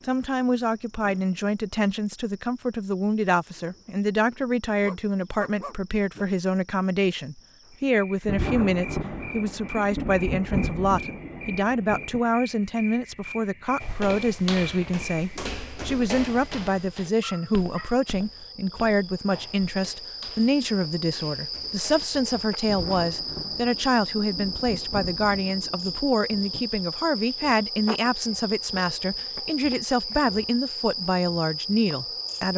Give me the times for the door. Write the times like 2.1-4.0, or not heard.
not heard.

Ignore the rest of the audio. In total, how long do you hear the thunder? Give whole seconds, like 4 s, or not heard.
8 s.